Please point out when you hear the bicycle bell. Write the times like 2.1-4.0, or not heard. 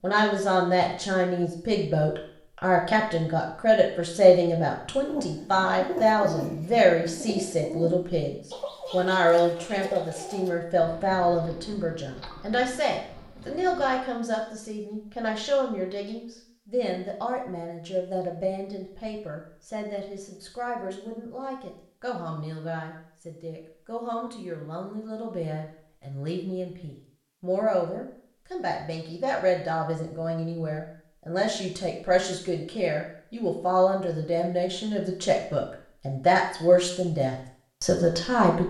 not heard.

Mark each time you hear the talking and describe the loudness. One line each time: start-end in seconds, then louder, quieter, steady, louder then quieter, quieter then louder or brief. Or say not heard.
0.0-38.6 quieter then louder.